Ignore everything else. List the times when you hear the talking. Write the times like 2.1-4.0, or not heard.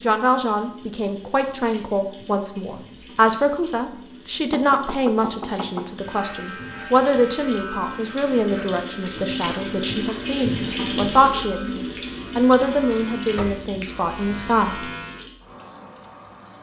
0.0-14.9.